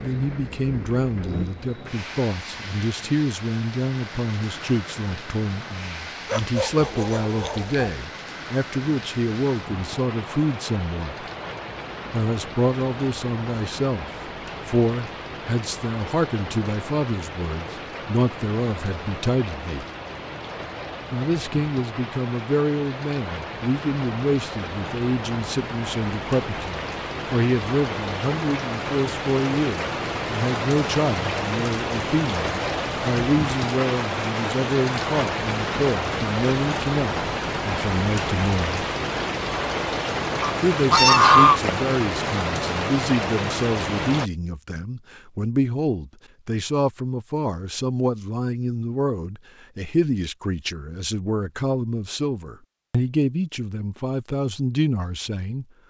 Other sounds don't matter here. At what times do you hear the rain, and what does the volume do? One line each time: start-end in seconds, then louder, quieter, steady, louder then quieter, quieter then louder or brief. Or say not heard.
0.0-44.3 louder.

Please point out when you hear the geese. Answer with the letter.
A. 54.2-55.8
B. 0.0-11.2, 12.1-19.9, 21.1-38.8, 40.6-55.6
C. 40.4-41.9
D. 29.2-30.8
C.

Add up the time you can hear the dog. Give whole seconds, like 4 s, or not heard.
2 s.